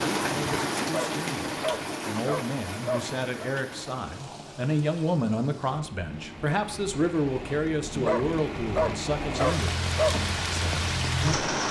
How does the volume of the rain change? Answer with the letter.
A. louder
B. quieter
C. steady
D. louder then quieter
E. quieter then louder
E.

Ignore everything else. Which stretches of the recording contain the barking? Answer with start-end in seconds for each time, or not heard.
0.8-3.5, 8.0-10.2.